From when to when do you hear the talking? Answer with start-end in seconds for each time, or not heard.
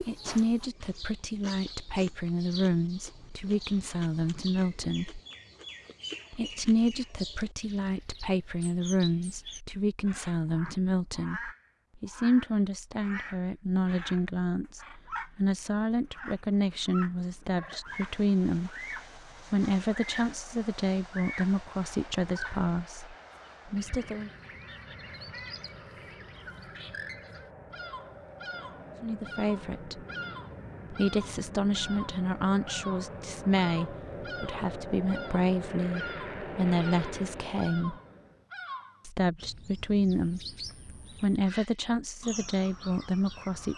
0.0-5.2, 6.3-24.3, 29.0-30.0, 30.9-38.0, 39.0-43.7.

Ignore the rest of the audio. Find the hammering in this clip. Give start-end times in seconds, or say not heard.
not heard.